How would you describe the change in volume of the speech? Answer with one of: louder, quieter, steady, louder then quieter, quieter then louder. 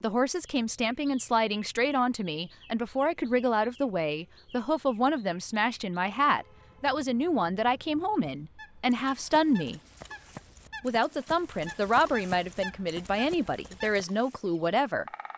steady.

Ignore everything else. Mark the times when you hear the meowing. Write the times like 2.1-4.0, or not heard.
not heard.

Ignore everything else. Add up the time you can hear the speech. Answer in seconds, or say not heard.
14 s.